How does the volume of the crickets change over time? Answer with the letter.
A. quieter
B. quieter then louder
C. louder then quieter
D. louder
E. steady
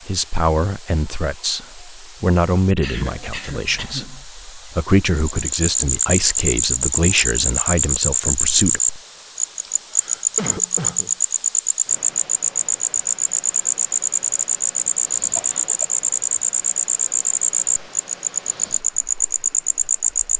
E.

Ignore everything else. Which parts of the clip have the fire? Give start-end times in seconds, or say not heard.
not heard.